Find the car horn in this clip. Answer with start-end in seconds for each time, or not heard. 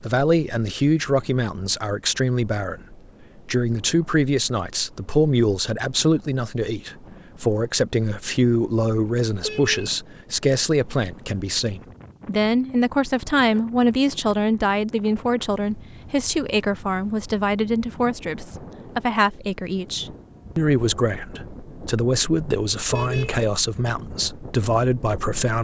9.4-10.0, 22.9-23.4.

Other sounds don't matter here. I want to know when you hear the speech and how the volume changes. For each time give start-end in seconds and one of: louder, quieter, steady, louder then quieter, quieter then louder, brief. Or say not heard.
0.0-25.5 steady.